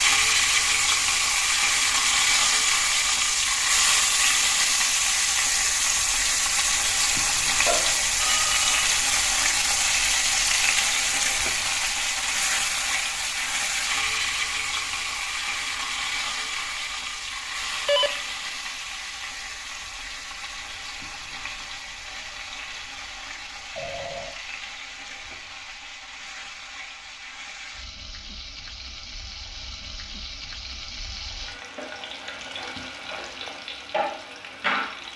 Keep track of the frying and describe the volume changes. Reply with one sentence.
The volume of the frying goes down.